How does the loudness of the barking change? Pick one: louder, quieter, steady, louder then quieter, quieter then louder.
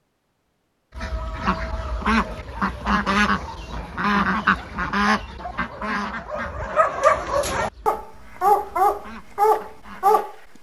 louder.